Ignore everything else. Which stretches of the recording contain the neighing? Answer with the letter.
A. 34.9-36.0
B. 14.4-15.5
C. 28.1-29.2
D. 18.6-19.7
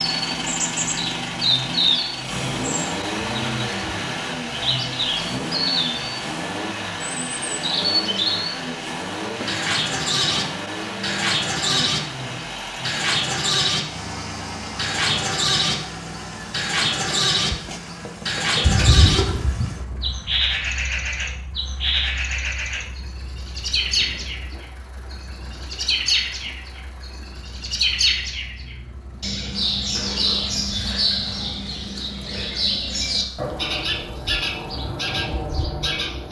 D.